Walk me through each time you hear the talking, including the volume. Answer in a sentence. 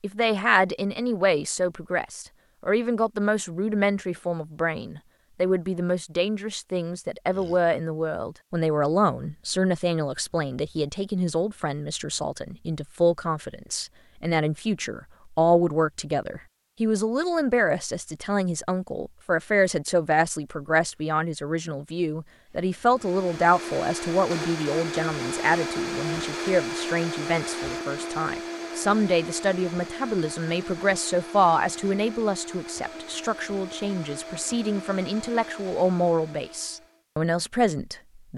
You can hear the talking from 0.0 to 38.3 s, at a steady volume.